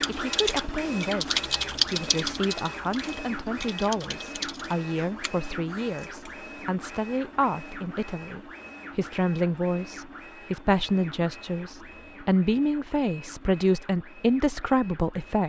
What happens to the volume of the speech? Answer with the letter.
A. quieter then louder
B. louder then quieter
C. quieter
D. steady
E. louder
E.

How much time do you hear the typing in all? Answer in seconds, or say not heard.
6 s.